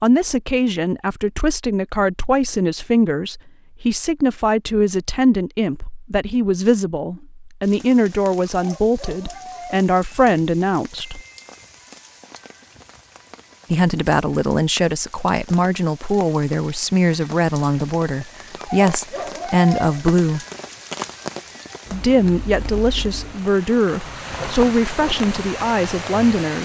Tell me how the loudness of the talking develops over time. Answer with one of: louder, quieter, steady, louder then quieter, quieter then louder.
steady.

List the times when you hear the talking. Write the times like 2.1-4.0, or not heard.
0.0-11.2, 13.7-20.4, 21.9-26.6.